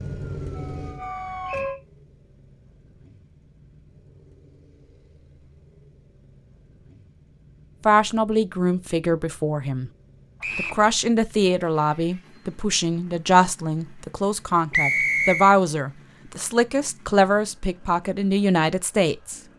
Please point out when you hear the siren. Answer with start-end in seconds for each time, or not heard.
0.0-1.8.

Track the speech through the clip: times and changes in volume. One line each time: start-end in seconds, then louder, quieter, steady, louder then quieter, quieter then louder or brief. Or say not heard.
7.8-9.9 brief
10.6-19.4 steady.